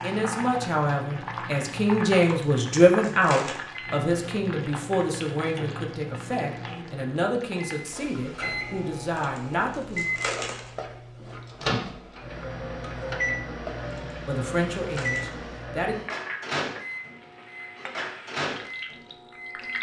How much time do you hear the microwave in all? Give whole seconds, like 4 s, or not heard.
20 s.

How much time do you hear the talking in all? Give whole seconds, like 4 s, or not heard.
12 s.